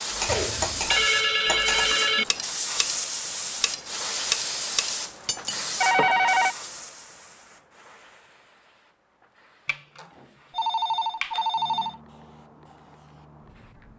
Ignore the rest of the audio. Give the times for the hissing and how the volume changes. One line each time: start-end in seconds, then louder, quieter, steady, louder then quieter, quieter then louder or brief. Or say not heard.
0.0-13.9 quieter then louder.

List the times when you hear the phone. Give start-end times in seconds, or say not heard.
0.2-2.2, 5.8-6.5, 9.7-11.9.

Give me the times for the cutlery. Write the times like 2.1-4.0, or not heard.
0.1-6.1.